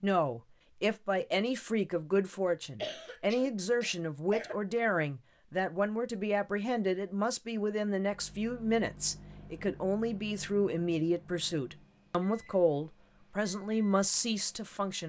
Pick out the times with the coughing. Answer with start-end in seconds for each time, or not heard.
2.8-4.5.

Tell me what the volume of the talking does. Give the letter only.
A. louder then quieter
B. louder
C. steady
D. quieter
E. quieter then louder
C.